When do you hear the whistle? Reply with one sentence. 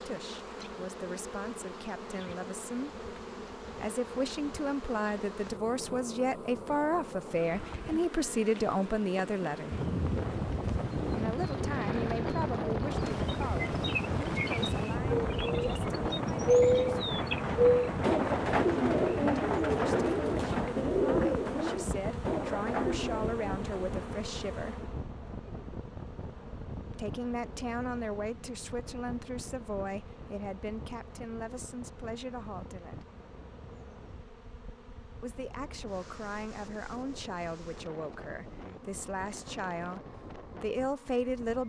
You can't hear the whistle here.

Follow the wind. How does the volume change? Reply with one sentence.
The volume of the wind goes down.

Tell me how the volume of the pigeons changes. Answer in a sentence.
The loudness of the pigeons goes up, then down.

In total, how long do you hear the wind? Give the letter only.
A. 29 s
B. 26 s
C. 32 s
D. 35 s
C.